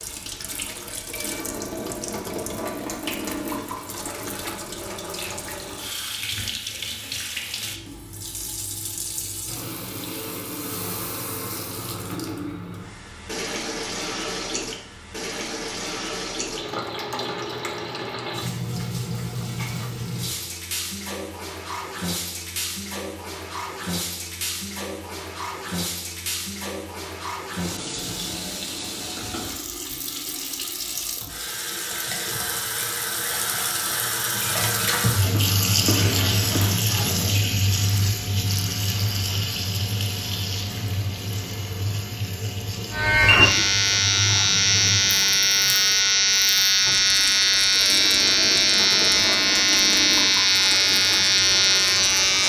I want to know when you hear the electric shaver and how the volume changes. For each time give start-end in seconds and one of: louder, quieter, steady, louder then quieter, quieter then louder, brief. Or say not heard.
42.9-52.4 steady.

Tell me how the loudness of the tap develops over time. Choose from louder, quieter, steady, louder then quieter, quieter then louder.
louder then quieter.